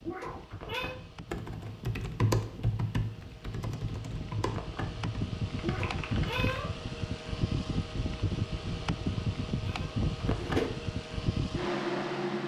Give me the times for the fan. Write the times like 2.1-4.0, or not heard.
0.0-12.4.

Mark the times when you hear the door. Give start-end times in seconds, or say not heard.
0.5-1.1, 4.5-5.0, 10.2-10.8.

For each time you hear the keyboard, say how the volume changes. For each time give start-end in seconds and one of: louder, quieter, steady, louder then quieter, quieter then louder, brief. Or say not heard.
1.2-6.7 quieter.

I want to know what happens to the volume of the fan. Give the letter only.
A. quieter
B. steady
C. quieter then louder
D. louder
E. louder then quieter
D.